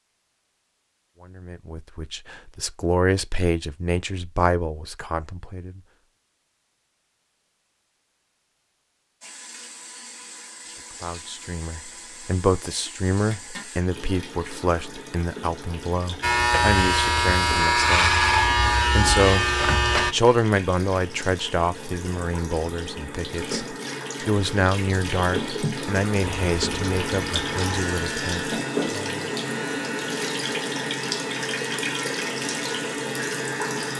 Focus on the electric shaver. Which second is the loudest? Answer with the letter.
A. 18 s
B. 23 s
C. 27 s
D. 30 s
A.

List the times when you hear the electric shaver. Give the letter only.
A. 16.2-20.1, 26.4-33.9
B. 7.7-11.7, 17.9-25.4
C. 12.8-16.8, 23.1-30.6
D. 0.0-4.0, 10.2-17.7
A.